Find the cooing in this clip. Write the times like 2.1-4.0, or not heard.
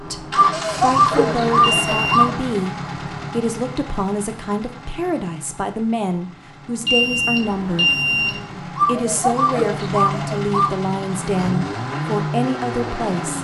0.3-2.3, 8.8-10.8.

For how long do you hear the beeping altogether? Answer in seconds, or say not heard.
2 s.